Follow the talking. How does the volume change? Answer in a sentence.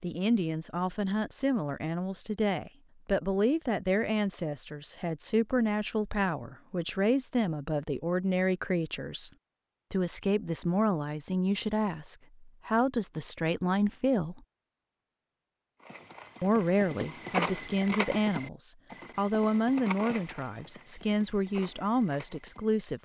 The loudness of the talking stays about the same.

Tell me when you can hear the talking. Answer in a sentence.
You can hear the talking from 0.0 to 9.3 s, from 9.9 to 14.4 s and from 16.4 to 23.0 s.